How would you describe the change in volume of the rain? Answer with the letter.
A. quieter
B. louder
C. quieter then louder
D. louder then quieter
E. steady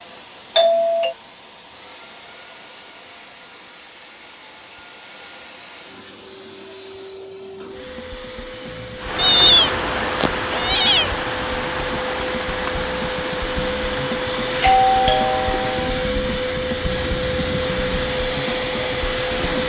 A.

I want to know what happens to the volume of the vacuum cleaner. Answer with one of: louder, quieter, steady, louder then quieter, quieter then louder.
louder.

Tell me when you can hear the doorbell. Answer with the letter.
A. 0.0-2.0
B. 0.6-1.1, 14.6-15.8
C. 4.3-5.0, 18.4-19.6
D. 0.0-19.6
B.